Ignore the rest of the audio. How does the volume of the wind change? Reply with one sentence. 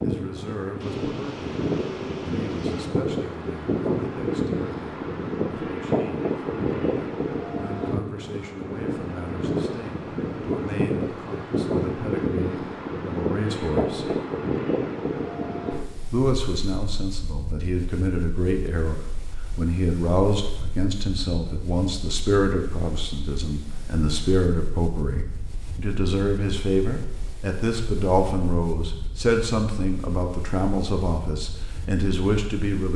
The volume of the wind goes down.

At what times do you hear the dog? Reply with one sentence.
You can't hear the dog here.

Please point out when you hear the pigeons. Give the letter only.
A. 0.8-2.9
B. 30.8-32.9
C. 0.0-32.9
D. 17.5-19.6
A.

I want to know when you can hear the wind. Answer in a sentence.
You can hear the wind from 0.0 to 32.9 s.